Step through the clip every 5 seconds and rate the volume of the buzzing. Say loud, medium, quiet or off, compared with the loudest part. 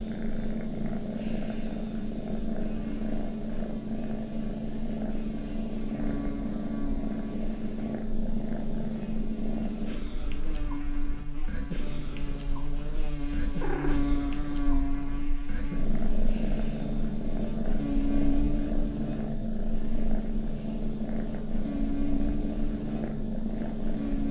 medium, medium, loud, loud, loud.